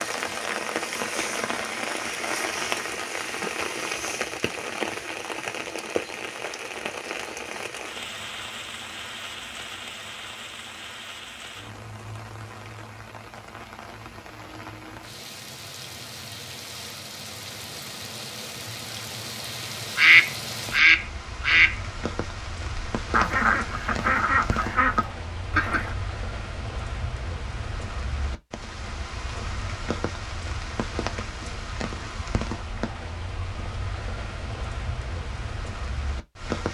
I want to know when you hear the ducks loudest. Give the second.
20 s.